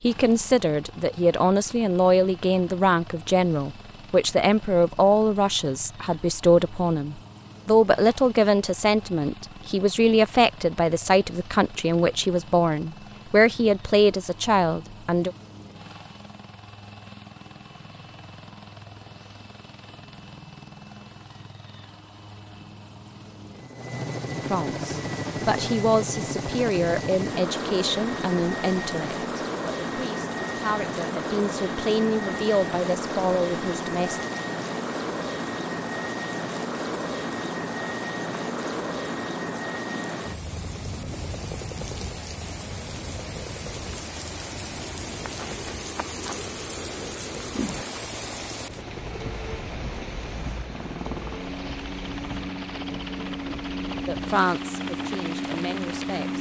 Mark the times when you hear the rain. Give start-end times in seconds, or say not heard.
24.9-56.3.